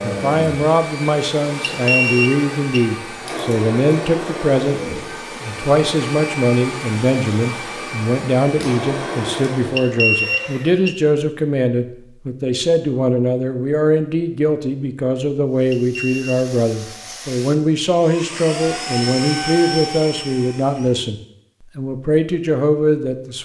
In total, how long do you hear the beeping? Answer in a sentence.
You can hear the beeping for 3 seconds altogether.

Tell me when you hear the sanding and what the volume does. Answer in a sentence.
The sanding can't be heard in this clip.